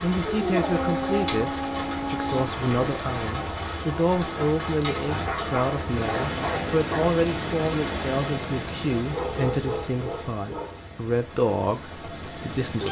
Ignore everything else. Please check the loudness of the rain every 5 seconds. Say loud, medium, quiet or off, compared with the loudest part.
loud, loud, medium.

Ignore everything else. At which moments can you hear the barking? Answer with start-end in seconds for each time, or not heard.
0.2-2.5, 5.1-7.1, 9.1-10.8.